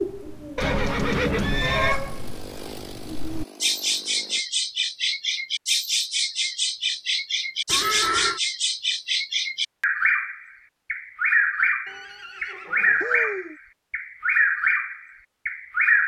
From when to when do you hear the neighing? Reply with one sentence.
The neighing can be heard from 0.6 to 2.0 s, from 7.7 to 8.4 s and from 11.8 to 13.6 s.